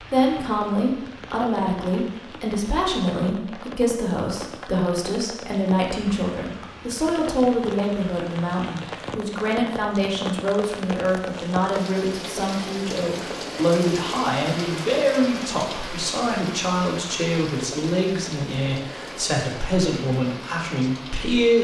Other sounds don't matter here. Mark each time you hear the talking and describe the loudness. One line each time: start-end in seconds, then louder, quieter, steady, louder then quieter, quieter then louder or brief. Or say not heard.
0.1-21.5 steady.